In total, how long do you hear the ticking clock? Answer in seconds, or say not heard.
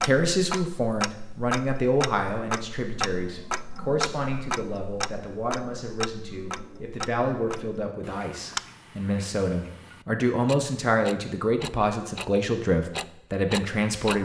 14 s.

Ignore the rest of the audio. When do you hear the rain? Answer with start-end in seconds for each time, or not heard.
not heard.